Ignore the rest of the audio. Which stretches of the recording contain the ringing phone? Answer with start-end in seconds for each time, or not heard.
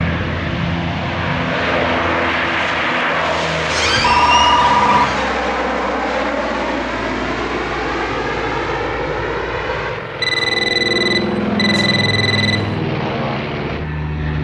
4.0-5.2, 10.2-12.6.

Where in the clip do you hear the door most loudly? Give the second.
4 s.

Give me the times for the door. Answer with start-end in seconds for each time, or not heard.
3.7-5.3.